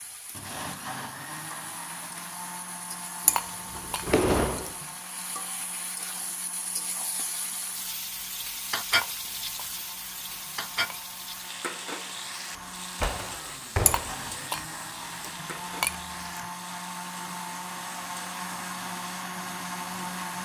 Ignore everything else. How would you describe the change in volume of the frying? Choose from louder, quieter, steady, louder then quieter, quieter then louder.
louder then quieter.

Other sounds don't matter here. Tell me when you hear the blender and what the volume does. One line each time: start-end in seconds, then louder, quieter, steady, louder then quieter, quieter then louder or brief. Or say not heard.
0.2-20.4 quieter then louder.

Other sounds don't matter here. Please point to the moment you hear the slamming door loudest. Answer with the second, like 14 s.
4 s.